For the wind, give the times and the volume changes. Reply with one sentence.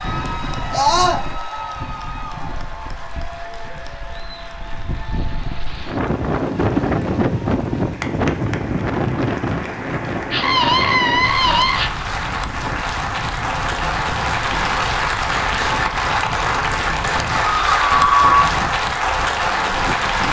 You can hear the wind from 0.0 to 20.2 s, getting louder then quieter.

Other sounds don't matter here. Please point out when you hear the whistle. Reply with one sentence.
You can't hear the whistle here.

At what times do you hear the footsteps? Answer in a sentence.
The footsteps can't be heard in this clip.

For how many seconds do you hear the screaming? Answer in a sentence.
You can hear the screaming for 3 seconds altogether.